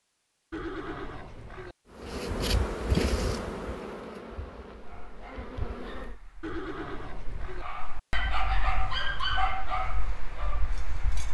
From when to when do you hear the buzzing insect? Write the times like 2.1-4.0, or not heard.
1.9-6.2.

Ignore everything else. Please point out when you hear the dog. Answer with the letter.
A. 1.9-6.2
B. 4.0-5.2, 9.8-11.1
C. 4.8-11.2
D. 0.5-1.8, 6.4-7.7
C.